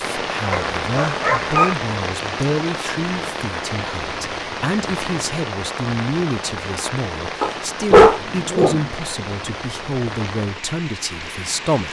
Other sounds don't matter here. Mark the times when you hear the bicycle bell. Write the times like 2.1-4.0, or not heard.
not heard.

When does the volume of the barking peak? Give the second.
8 s.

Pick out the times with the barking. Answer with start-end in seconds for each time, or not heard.
0.5-1.8, 7.4-8.8.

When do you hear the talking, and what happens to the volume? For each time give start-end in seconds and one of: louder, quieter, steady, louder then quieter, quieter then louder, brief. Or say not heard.
0.1-11.8 steady.